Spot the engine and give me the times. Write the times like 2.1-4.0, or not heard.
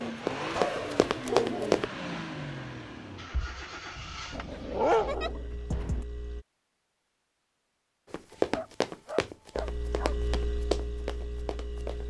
0.0-6.5, 9.6-12.0.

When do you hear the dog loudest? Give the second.
5 s.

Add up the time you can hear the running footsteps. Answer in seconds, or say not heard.
6 s.